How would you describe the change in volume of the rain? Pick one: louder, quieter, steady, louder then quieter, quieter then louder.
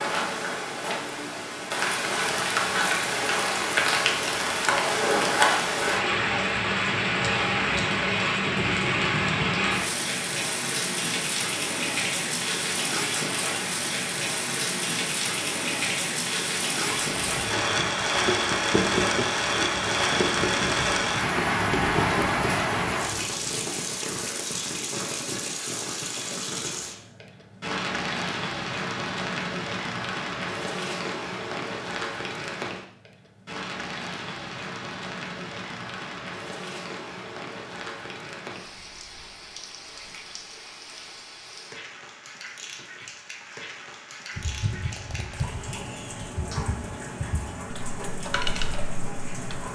quieter.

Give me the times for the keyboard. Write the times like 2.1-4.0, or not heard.
44.4-49.6.